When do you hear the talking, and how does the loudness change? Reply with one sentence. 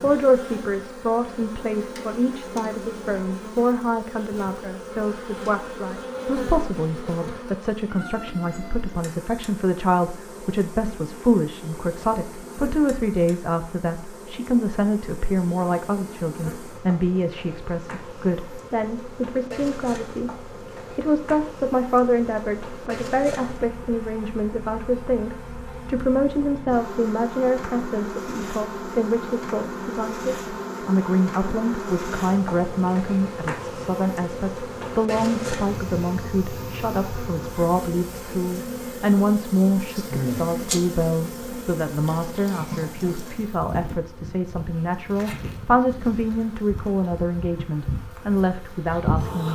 The talking can be heard from 0.0 to 49.5 s, at a steady volume.